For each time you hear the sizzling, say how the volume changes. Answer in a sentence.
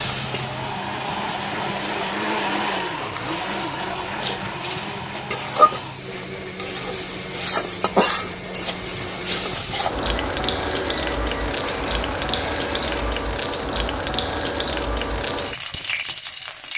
You can hear the sizzling from 0.0 to 16.7 s, getting louder.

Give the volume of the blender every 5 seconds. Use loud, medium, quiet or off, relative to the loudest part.
loud, medium, medium, off.